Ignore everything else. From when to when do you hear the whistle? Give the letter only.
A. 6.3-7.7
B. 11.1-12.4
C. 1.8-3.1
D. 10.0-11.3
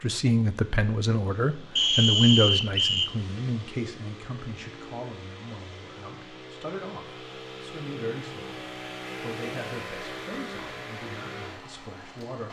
C.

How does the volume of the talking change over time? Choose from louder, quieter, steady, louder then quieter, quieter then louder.
quieter.